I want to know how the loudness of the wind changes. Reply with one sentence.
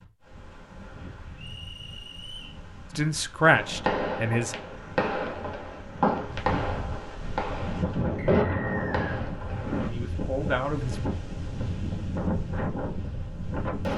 The volume of the wind goes up.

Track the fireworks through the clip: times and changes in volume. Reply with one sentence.
The fireworks can be heard from 3.4 to 9.9 s, at a steady volume.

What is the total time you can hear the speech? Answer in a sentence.
You can hear the speech for 3 seconds altogether.